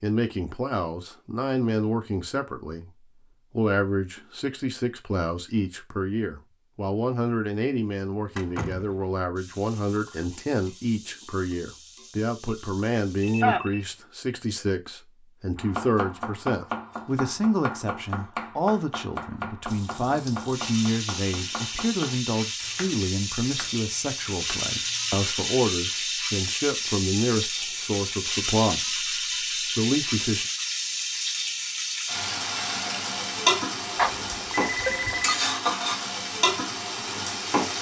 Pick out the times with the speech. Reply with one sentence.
You can hear the speech from 0.0 to 30.4 s.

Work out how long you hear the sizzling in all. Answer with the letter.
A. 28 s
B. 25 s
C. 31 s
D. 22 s
D.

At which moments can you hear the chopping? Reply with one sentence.
The chopping can be heard from 15.6 to 25.2 s.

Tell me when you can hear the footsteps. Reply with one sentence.
The footsteps can't be heard in this clip.